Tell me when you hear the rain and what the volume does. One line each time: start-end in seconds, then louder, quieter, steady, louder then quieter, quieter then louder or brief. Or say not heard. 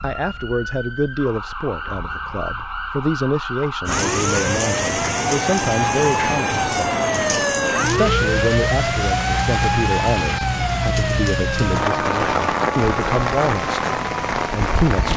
3.9-15.1 steady.